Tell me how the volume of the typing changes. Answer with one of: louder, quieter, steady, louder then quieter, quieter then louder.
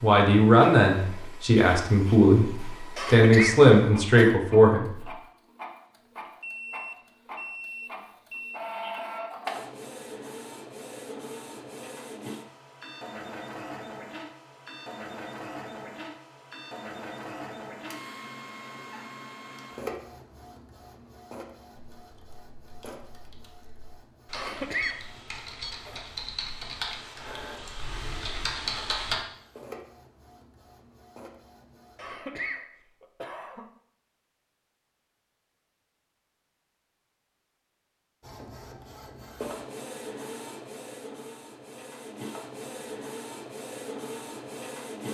louder.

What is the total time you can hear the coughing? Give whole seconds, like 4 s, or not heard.
4 s.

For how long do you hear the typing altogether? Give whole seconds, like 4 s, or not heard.
7 s.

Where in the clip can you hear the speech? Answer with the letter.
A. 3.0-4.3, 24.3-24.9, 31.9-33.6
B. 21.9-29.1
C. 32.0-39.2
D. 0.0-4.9
D.